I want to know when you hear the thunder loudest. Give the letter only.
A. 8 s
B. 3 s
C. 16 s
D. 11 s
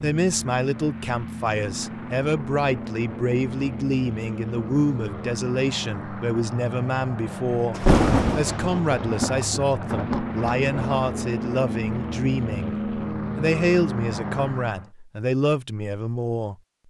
A.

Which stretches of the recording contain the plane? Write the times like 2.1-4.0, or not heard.
0.0-14.9.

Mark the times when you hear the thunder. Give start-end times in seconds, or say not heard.
7.7-11.1.